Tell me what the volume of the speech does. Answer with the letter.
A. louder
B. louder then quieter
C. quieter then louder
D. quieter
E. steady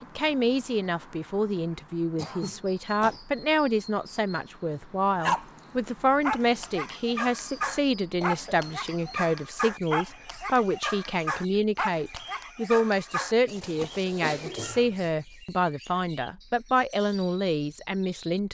E.